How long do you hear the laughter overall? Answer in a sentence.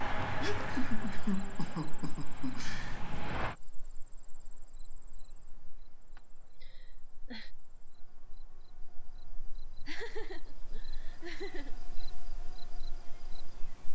You can hear the laughter for 6 seconds altogether.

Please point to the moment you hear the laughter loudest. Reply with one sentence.
The loudest moment of the laughter is at 1 second.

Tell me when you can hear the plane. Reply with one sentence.
The plane can be heard from 0.0 to 3.5 s.